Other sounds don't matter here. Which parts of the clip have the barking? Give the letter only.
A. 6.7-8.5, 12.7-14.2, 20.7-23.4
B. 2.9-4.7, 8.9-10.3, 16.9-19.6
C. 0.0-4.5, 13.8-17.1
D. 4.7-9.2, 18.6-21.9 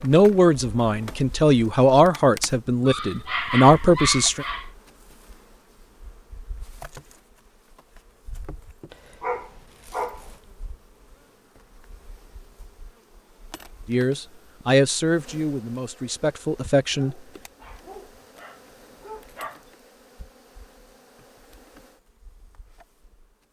B.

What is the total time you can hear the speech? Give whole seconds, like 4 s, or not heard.
8 s.